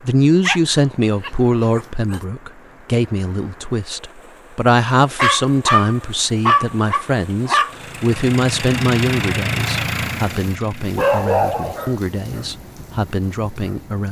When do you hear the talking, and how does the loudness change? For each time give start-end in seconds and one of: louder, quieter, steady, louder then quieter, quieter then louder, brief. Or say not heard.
0.0-14.0 quieter.